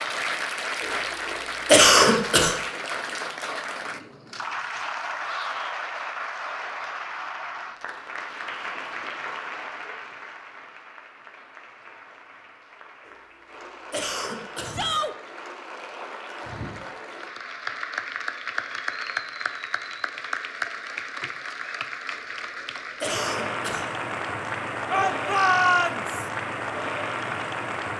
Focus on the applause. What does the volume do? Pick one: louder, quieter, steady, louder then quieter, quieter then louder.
quieter then louder.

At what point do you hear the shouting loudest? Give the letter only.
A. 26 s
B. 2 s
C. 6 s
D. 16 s
A.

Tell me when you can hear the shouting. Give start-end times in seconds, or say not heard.
5.2-5.8, 14.7-15.2, 24.9-26.2.